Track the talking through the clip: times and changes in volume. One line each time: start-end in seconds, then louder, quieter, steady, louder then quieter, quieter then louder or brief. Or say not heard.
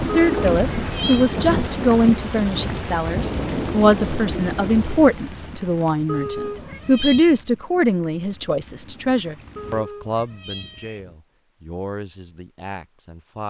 0.0-13.4 quieter.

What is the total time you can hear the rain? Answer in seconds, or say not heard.
10 s.